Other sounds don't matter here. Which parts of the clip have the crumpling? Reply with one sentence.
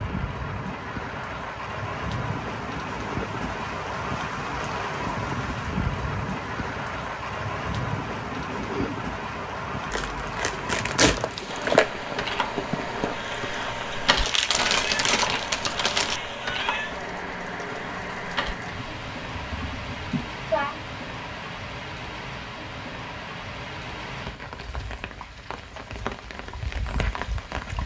The crumpling can be heard from 9.9 to 11.9 s and from 14.2 to 16.2 s.